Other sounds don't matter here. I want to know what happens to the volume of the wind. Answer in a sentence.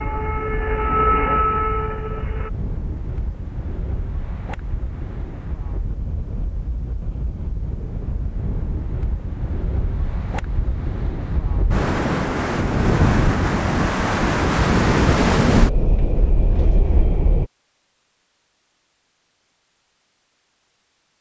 The loudness of the wind goes up.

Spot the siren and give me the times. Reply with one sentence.
You can hear the siren from 0.0 to 2.5 s.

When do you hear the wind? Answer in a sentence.
The wind can be heard from 0.0 to 17.5 s.